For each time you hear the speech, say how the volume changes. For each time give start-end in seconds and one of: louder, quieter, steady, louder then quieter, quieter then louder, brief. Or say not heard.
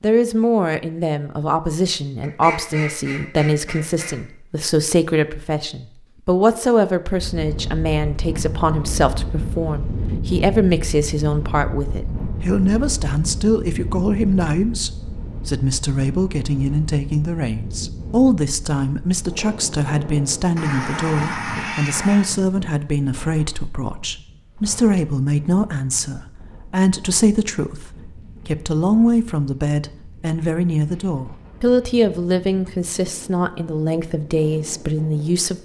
0.0-35.6 steady.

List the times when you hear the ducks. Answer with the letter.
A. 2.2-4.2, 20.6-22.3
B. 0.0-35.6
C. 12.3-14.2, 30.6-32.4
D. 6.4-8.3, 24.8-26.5
A.